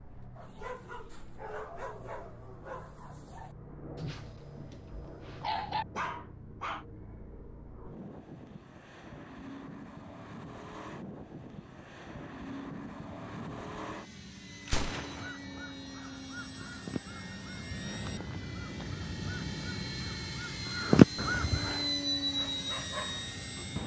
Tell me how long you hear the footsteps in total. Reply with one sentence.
The footsteps can't be heard in this clip.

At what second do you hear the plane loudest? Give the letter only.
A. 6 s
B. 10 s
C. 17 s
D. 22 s
D.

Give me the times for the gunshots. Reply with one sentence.
The gunshots can be heard from 14.7 to 15.3 s.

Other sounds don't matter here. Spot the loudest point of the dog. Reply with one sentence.
The volume of the dog peaks at 6 seconds.